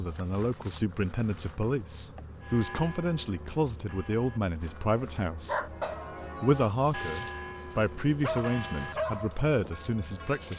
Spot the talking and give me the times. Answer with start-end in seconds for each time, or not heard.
0.0-5.6, 6.4-10.5.